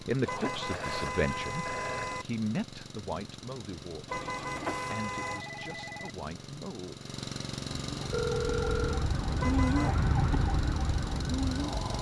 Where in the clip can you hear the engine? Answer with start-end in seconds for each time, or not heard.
0.0-11.9.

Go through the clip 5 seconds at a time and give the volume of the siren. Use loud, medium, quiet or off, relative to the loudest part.
off, loud, loud.